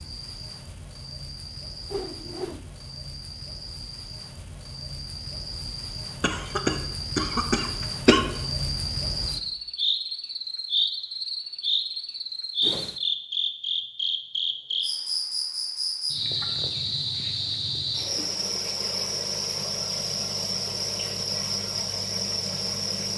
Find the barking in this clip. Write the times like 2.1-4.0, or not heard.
not heard.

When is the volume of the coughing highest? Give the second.
8 s.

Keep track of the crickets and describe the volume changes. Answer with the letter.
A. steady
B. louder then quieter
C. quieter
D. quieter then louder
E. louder
E.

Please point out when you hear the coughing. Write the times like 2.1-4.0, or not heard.
6.2-8.2.